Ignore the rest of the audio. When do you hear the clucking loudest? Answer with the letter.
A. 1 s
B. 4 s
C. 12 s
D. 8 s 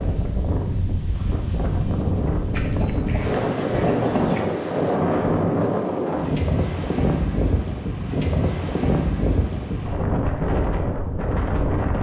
B.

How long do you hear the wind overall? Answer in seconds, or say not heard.
12 s.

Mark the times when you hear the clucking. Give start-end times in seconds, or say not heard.
2.5-4.5.